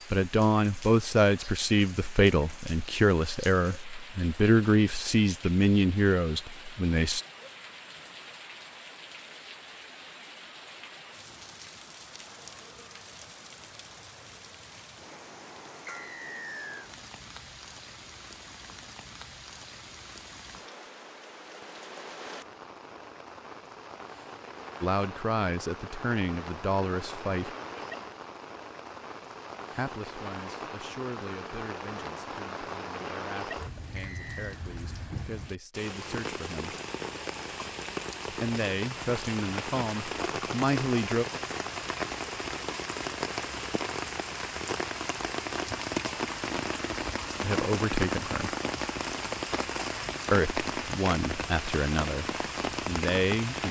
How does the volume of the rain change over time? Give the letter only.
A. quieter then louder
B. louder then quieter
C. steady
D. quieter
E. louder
E.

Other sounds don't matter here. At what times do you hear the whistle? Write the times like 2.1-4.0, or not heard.
15.8-16.9, 34.0-34.5.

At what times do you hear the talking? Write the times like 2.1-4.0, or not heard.
0.1-7.2, 24.8-27.6, 29.7-36.8, 38.3-41.2, 47.4-48.5, 50.3-53.6.